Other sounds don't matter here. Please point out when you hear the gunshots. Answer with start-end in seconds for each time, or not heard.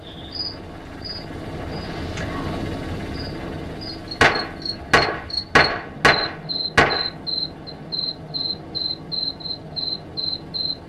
4.2-7.1.